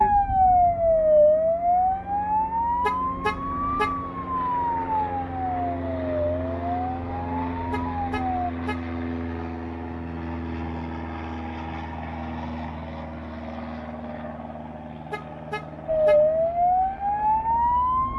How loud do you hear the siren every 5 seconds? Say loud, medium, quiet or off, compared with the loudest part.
loud, medium, off, loud.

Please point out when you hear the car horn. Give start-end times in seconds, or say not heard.
2.8-4.0, 7.7-8.8, 15.1-16.2.